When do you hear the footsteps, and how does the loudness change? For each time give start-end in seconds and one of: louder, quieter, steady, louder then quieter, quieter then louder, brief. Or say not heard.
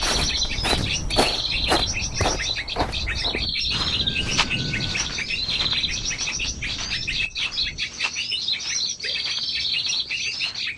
0.0-10.7 quieter.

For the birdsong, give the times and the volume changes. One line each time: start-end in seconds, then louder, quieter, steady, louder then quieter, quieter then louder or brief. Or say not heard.
0.0-10.7 steady.